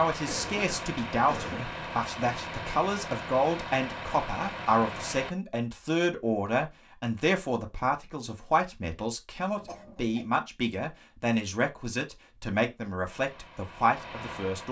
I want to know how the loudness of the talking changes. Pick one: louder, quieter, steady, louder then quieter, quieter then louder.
steady.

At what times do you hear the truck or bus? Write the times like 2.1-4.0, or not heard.
0.0-5.3, 13.1-14.6.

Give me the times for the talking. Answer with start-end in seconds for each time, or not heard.
0.0-14.6.